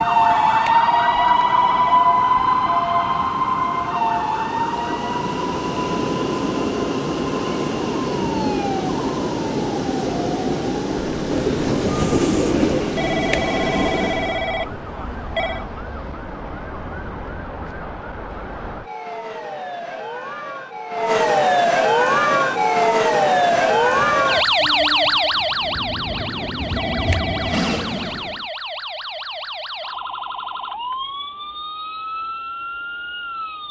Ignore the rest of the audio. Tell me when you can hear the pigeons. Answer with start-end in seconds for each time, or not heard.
11.3-12.9.